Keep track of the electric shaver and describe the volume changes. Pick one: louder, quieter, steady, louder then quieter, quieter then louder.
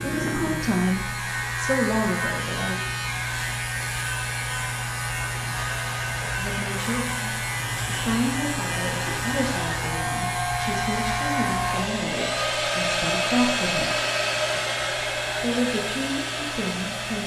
quieter.